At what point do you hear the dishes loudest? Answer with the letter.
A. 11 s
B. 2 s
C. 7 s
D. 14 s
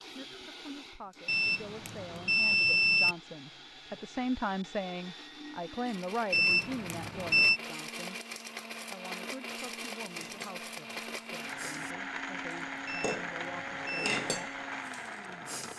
D.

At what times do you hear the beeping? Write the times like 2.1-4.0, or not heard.
1.2-3.1, 6.3-7.6, 12.8-14.2.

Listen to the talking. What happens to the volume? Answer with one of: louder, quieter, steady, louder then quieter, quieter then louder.
louder then quieter.